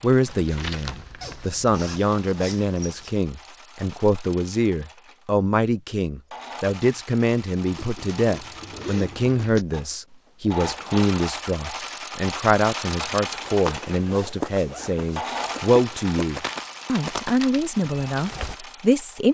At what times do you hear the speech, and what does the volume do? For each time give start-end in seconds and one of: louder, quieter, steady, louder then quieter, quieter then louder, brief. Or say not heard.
0.0-19.3 steady.